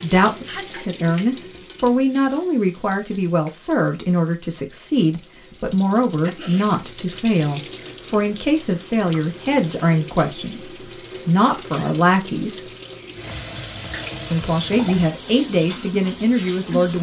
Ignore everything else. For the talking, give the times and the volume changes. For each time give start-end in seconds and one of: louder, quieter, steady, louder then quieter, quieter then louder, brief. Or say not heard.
0.0-12.7 steady
14.3-16.9 brief.